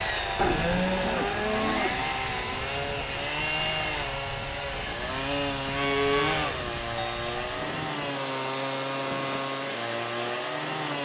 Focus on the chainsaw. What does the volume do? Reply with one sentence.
The volume of the chainsaw stays about the same.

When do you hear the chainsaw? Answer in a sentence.
You can hear the chainsaw from 0.0 to 10.9 s.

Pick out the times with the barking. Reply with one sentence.
The barking can't be heard in this clip.